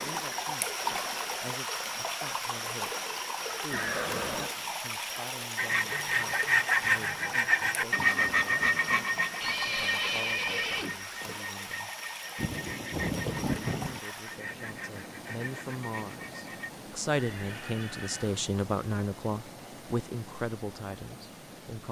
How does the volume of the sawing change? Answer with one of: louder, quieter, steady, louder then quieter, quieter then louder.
quieter.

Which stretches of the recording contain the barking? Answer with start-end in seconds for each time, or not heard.
not heard.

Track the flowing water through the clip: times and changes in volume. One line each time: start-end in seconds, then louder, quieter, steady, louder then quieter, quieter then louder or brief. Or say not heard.
0.0-21.8 quieter.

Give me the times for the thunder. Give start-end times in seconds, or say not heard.
12.3-14.0.